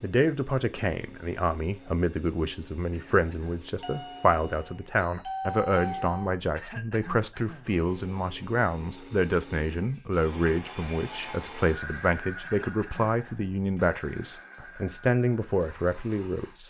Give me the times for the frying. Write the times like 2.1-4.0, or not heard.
not heard.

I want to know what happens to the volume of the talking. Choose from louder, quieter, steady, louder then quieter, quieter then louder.
steady.